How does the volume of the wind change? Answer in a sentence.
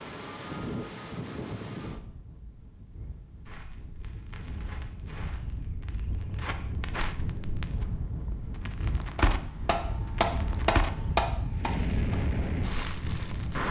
The volume of the wind goes down, then up.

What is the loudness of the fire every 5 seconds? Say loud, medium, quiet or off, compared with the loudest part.
quiet, loud, loud.